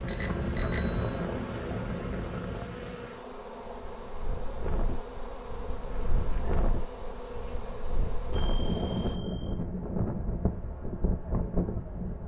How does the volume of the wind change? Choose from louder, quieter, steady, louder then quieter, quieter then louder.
quieter then louder.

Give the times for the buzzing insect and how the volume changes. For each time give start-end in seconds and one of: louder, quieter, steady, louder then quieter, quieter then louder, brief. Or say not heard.
0.0-9.2 steady.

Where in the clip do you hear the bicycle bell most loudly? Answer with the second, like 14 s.
1 s.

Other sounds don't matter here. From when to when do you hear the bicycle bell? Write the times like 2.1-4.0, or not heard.
0.1-1.2, 5.9-6.5, 8.3-9.5.